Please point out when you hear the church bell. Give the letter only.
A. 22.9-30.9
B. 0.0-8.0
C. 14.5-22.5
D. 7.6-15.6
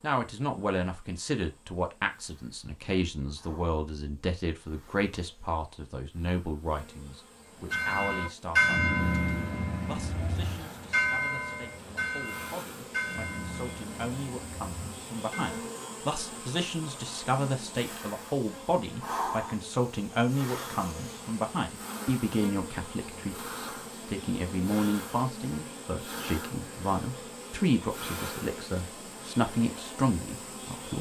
D.